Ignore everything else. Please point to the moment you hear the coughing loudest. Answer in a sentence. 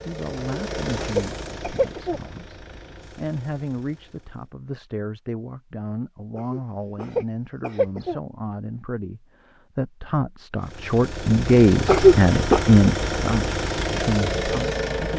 The loudest moment of the coughing is at 12 seconds.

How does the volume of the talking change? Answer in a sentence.
The loudness of the talking goes up.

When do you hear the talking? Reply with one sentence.
The talking can be heard from 0.1 to 15.1 s.